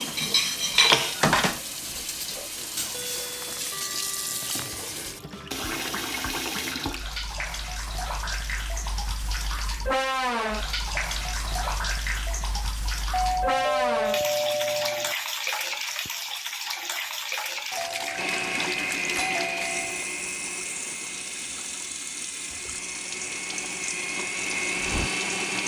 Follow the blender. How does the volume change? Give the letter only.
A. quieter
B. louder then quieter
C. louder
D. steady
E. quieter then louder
E.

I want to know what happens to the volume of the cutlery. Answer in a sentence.
The loudness of the cutlery goes down.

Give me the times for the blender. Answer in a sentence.
You can hear the blender from 18.1 to 25.6 s.